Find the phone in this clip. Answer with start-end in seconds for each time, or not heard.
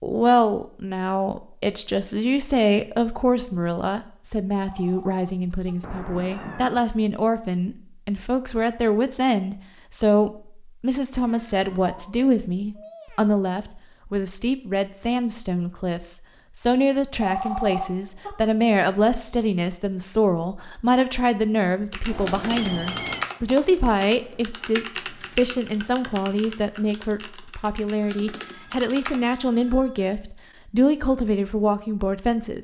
4.6-5.8, 17.2-18.3, 27.9-30.2.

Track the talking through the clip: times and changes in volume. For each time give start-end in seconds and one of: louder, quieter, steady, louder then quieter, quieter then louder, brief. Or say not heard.
0.0-32.6 steady.